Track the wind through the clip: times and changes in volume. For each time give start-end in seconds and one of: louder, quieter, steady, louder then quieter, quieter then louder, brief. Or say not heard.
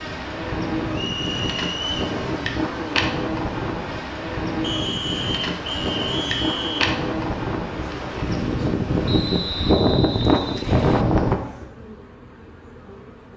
0.0-11.4 louder.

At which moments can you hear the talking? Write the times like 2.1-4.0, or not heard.
not heard.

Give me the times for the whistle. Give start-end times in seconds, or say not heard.
0.9-2.1, 4.6-6.9, 9.1-11.1.